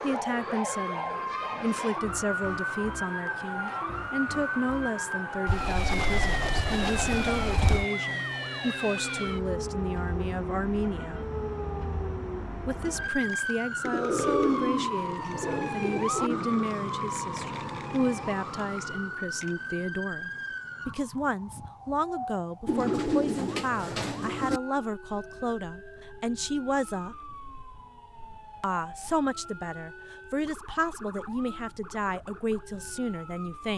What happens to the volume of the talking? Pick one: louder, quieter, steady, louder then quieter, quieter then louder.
steady.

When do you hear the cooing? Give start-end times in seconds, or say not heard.
5.5-7.8, 13.8-16.6, 22.6-24.6.